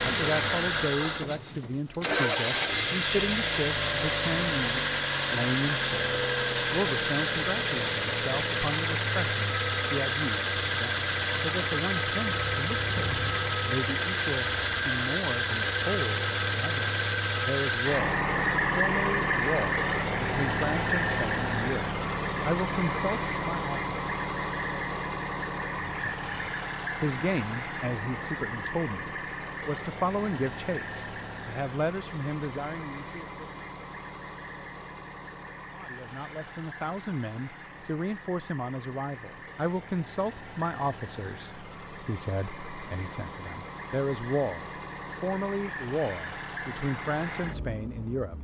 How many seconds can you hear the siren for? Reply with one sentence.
The siren can't be heard in this clip.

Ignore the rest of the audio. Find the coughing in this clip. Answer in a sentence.
You can't hear the coughing here.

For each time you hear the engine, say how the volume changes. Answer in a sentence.
The engine can be heard from 0.0 to 48.3 s, getting quieter.